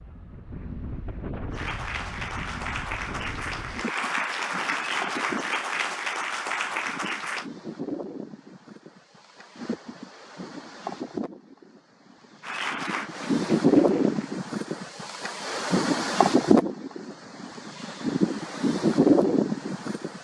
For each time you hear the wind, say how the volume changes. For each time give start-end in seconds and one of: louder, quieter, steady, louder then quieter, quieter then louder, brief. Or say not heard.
0.0-20.1 louder.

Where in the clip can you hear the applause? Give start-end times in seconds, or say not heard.
1.5-7.5, 12.4-14.3.